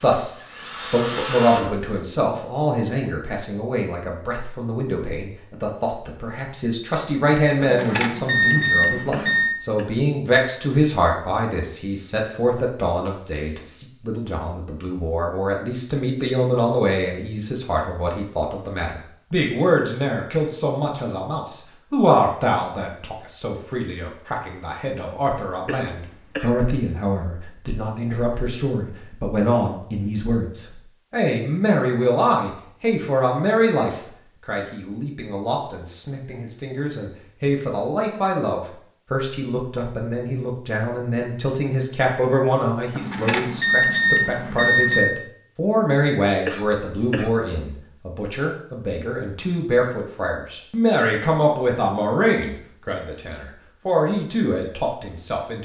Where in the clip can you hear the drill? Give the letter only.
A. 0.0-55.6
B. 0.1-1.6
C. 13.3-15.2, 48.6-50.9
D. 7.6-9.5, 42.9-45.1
B.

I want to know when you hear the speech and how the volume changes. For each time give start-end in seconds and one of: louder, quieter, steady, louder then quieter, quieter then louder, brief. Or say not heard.
0.0-55.6 steady.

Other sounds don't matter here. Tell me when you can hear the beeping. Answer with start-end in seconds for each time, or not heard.
7.6-9.5, 42.9-45.1.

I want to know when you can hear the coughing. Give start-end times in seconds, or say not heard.
9.1-9.9, 25.6-26.6, 46.5-47.3.